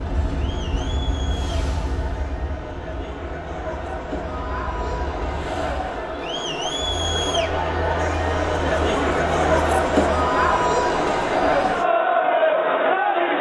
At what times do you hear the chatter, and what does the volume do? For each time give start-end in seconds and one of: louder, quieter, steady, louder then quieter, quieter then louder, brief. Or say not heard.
0.0-13.3 louder.